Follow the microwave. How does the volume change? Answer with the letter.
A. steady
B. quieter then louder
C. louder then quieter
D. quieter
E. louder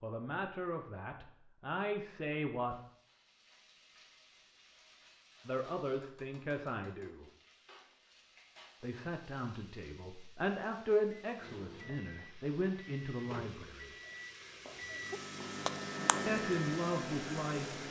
E.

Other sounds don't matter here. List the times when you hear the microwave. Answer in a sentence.
You can hear the microwave from 11.2 to 17.8 s.